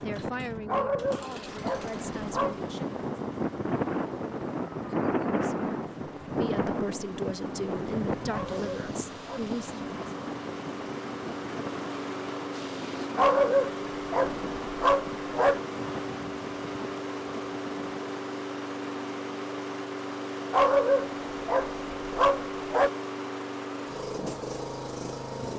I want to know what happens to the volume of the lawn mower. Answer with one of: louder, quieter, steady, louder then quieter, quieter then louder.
louder.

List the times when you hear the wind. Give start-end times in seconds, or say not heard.
0.0-18.1.